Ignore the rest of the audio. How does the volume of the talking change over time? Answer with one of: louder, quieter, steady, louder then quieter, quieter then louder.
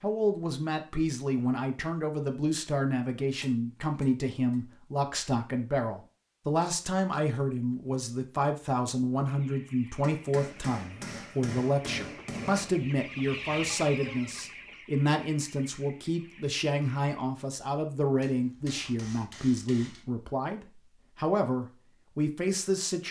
steady.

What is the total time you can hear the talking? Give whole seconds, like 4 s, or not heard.
23 s.